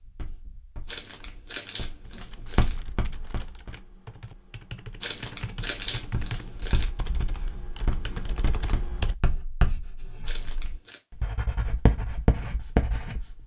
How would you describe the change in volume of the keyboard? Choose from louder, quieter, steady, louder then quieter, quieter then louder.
louder.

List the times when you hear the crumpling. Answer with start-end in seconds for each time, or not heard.
0.8-2.8, 5.0-6.9, 10.2-11.0.